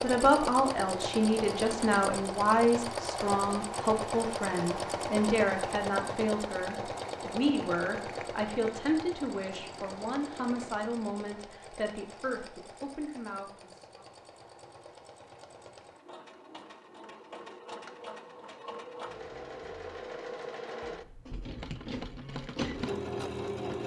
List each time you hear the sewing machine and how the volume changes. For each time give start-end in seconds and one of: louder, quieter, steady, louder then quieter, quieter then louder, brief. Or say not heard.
0.0-23.8 quieter then louder.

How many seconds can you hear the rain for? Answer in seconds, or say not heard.
not heard.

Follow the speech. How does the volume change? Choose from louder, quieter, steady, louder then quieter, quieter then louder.
quieter.